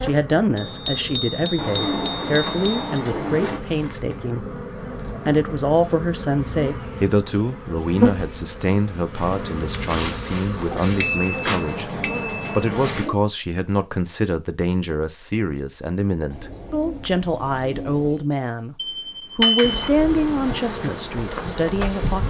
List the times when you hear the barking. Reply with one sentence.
The barking can't be heard in this clip.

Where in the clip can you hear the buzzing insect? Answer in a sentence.
The buzzing insect can be heard from 0.0 to 13.1 s and from 19.6 to 22.2 s.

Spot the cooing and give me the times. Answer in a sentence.
The cooing can be heard from 1.6 to 3.6 s, from 10.7 to 13.2 s and from 16.3 to 18.2 s.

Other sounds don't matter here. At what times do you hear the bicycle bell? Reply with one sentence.
You can hear the bicycle bell from 0.6 to 3.0 s, from 11.0 to 12.7 s and from 18.8 to 19.9 s.